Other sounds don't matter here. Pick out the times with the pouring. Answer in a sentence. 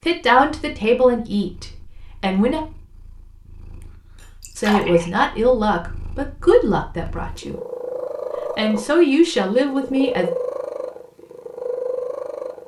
You can hear the pouring from 4.4 to 5.1 s.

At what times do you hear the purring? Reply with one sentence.
The purring can be heard from 0.2 to 12.6 s.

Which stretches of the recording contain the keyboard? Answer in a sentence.
You can't hear the keyboard here.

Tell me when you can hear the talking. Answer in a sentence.
You can hear the talking from 0.0 to 2.6 s, from 4.5 to 7.6 s and from 8.6 to 10.3 s.